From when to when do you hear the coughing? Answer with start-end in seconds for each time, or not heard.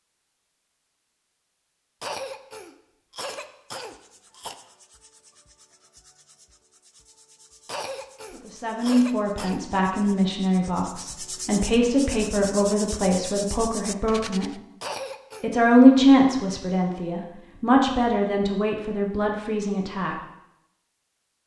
2.0-4.5, 7.7-10.2, 14.8-15.5.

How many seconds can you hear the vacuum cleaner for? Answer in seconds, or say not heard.
not heard.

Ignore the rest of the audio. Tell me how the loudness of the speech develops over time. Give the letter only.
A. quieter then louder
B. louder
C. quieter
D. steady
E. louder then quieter
E.